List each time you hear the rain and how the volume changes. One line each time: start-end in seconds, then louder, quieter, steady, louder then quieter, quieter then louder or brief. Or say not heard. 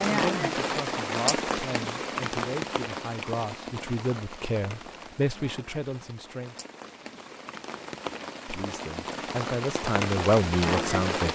0.0-11.2 quieter then louder.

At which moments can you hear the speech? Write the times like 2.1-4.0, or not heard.
0.0-6.5, 8.4-11.2.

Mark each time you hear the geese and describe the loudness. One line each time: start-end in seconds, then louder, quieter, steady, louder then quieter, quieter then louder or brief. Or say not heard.
not heard.